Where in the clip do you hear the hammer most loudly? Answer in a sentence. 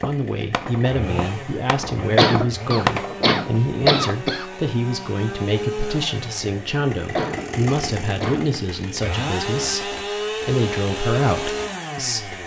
The volume of the hammer peaks at 3 seconds.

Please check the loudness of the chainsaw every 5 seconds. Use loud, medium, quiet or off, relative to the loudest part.
medium, loud, loud.